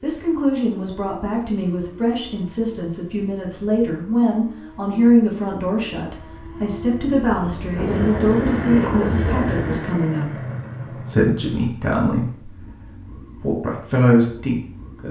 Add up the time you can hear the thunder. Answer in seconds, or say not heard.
2 s.